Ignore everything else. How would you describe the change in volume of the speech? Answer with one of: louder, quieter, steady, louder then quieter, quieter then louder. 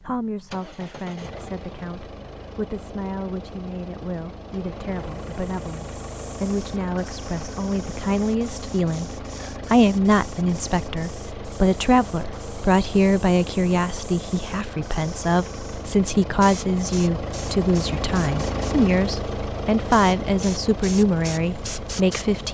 louder.